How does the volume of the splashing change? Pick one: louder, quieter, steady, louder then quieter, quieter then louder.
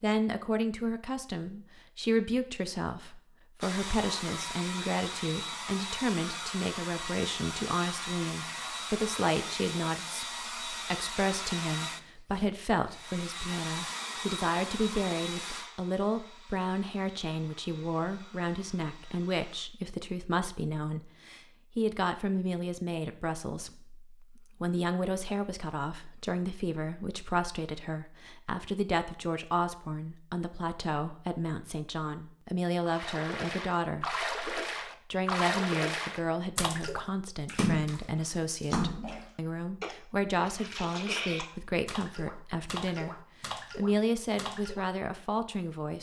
quieter.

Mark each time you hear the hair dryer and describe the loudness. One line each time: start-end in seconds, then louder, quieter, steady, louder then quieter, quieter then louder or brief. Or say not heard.
3.6-19.6 quieter.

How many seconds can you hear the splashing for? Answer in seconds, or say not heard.
12 s.